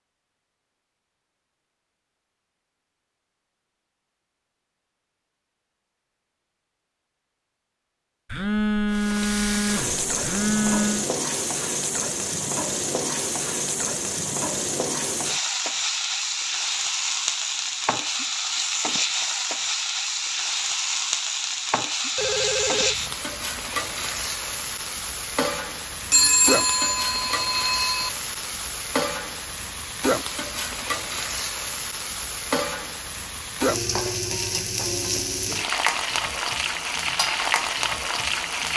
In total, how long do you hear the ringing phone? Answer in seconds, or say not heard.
6 s.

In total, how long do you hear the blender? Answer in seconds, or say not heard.
not heard.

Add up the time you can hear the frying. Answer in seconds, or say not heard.
30 s.